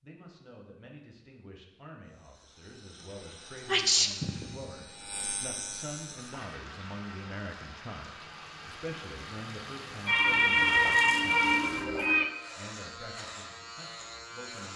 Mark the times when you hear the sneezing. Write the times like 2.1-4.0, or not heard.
3.6-4.8, 10.1-12.3.